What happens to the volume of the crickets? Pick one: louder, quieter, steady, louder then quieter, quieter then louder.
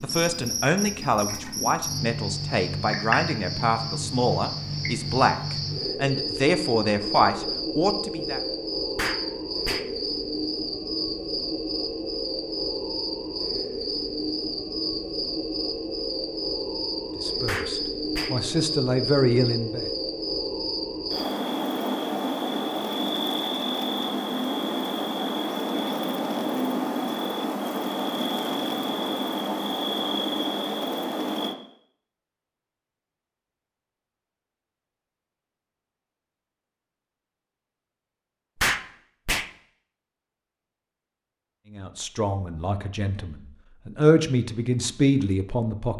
steady.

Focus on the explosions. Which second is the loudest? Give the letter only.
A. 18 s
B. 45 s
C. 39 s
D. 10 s
C.